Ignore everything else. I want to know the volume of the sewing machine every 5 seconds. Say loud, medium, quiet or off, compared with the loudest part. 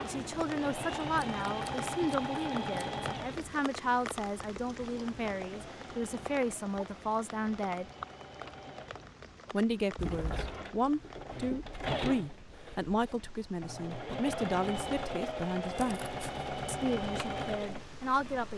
loud, quiet, loud, loud.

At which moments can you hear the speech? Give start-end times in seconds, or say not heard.
0.0-7.8, 9.5-18.5.